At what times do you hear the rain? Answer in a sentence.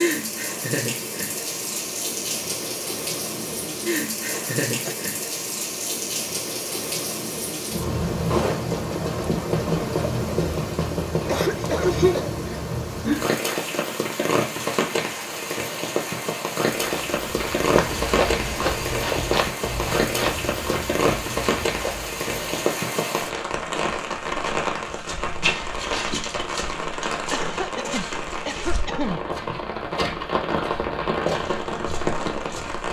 You can hear the rain from 0.0 to 32.8 s.